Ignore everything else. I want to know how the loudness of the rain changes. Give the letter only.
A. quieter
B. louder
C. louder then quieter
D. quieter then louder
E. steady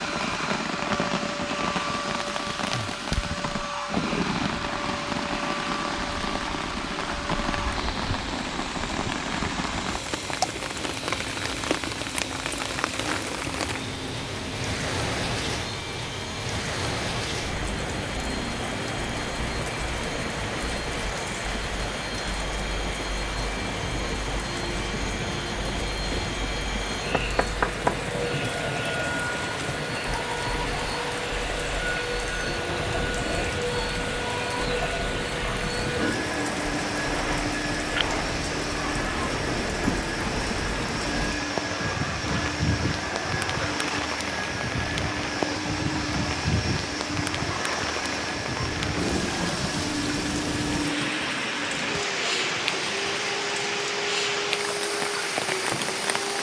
E.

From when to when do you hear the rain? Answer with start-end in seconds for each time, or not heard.
0.0-56.3.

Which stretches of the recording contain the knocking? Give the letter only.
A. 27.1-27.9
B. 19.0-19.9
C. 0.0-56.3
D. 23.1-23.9
A.